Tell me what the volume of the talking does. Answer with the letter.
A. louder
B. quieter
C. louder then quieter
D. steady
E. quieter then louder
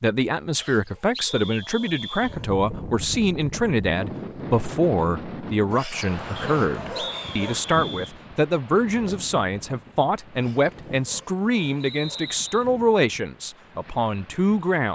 D.